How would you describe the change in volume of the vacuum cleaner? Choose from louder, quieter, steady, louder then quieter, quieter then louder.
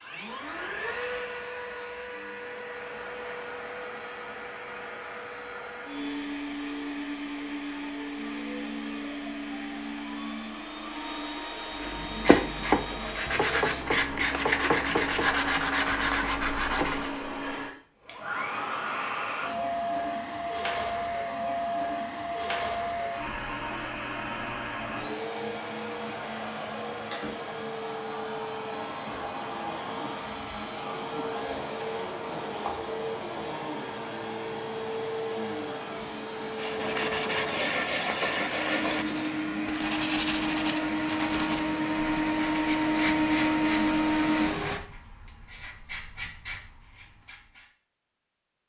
louder.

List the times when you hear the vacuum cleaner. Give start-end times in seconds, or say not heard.
0.0-44.8.